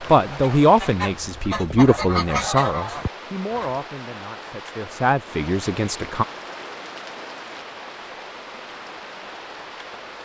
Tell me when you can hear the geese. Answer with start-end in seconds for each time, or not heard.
0.0-3.8.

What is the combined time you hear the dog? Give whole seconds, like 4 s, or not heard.
not heard.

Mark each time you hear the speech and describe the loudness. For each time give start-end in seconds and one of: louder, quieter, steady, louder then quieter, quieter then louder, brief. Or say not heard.
0.1-6.2 quieter then louder.